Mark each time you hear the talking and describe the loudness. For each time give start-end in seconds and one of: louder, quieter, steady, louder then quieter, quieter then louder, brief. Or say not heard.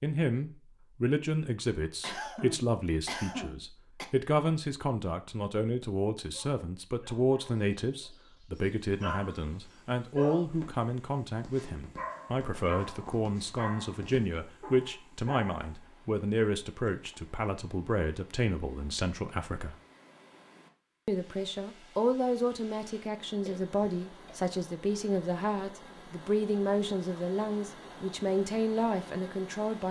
0.0-19.8 steady
21.1-29.8 steady.